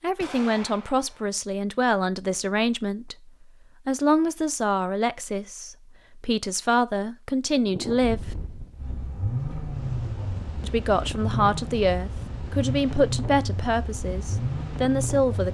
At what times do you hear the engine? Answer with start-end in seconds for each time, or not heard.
8.8-15.5.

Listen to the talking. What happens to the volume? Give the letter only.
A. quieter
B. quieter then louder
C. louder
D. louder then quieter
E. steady
E.